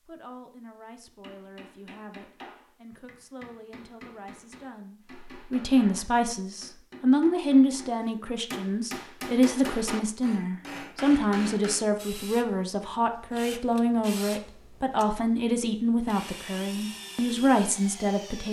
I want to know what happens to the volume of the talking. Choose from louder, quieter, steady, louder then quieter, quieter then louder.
louder.